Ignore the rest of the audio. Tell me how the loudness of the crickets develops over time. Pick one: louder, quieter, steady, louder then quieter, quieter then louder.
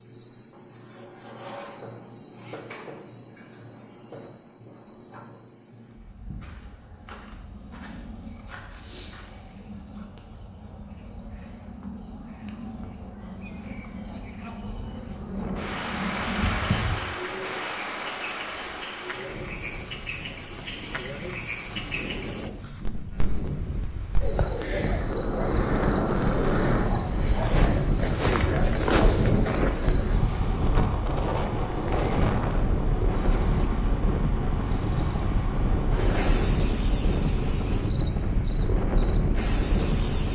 louder.